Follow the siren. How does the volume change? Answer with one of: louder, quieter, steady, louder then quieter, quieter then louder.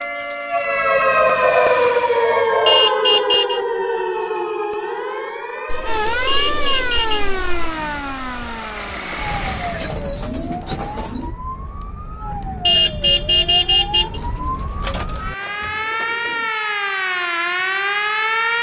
quieter then louder.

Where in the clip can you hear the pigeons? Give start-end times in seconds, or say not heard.
1.4-2.9, 5.7-7.7, 9.8-11.3, 14.0-16.4.